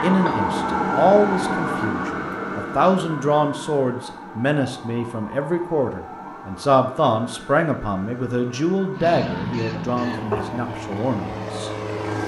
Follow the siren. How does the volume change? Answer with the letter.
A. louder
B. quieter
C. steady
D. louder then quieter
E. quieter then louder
B.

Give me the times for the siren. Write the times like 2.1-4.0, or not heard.
0.0-12.2.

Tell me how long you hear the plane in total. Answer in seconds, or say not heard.
3 s.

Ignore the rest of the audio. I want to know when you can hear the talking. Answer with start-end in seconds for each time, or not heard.
0.0-11.7.